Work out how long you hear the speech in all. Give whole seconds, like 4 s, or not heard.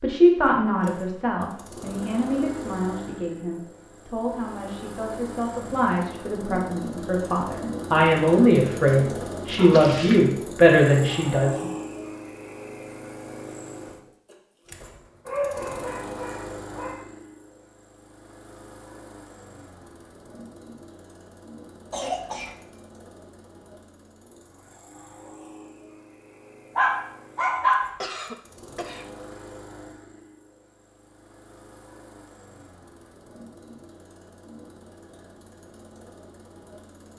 12 s.